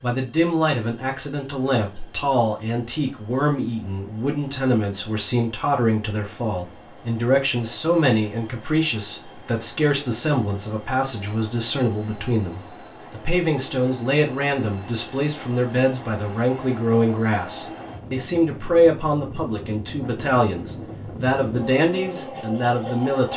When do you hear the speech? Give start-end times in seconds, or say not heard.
0.0-23.3.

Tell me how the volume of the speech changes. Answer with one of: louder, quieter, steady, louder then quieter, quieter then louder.
steady.